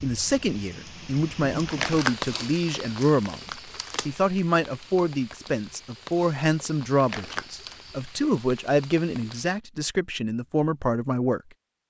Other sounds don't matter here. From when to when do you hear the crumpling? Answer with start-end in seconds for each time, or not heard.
1.6-4.2, 7.0-7.8.